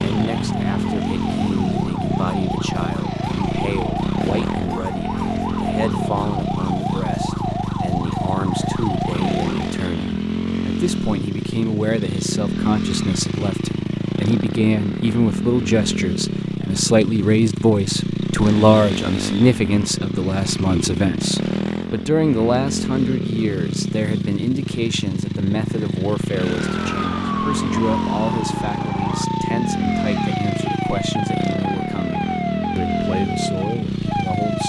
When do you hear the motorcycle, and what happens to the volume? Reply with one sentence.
The motorcycle can be heard from 0.0 to 34.6 s, at a steady volume.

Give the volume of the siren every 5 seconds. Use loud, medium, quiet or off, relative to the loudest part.
loud, loud, off, off, off, loud, loud.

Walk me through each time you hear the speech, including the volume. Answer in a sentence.
You can hear the speech from 0.0 to 34.6 s, getting louder then quieter.